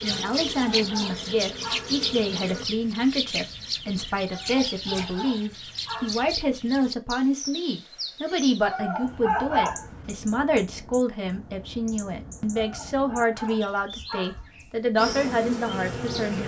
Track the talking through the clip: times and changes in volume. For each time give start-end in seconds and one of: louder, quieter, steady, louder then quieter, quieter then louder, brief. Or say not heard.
0.0-16.4 steady.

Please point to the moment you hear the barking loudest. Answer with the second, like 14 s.
9 s.